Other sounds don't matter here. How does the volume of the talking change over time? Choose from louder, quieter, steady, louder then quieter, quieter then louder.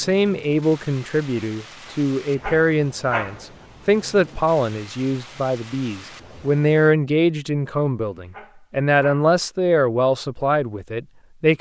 steady.